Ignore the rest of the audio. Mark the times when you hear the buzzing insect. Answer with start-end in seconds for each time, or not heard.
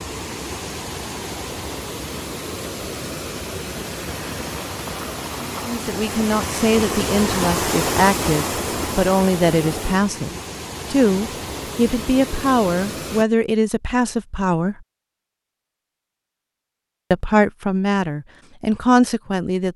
not heard.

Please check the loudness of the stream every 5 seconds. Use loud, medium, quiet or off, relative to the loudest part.
medium, loud, medium, off.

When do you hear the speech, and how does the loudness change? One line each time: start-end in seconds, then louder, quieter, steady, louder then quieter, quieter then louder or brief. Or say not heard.
5.7-14.8 steady
17.1-19.7 brief.